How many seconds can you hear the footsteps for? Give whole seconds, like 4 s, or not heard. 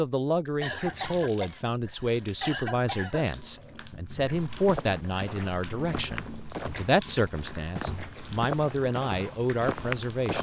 6 s.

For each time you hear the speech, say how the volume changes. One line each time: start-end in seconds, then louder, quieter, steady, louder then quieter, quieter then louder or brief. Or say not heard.
0.0-10.3 steady.